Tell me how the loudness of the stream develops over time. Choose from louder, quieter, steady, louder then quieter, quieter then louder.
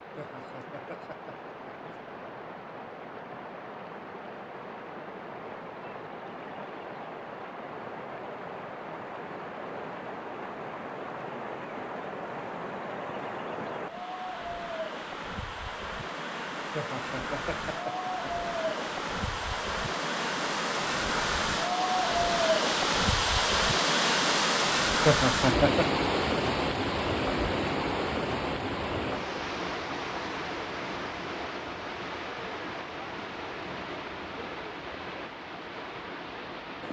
louder then quieter.